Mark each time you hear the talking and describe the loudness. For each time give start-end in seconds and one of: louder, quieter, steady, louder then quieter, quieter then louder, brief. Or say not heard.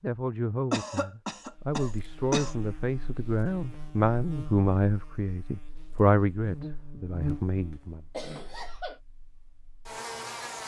0.0-8.1 louder then quieter.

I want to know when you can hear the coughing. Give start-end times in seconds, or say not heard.
0.7-2.5, 7.7-9.0.